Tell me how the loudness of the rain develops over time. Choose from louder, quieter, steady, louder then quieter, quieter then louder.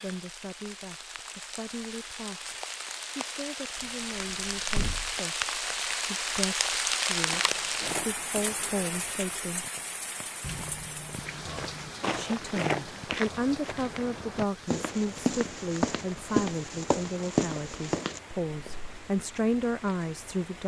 louder then quieter.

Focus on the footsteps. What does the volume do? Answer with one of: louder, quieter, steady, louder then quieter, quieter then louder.
quieter then louder.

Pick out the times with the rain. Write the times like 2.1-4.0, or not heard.
0.0-20.6.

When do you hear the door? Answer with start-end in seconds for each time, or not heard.
3.8-5.2, 10.4-11.9.